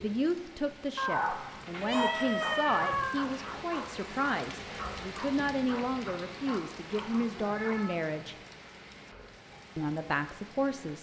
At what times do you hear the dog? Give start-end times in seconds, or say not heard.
1.1-7.8.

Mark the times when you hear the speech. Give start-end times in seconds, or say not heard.
0.0-8.3, 9.8-10.9.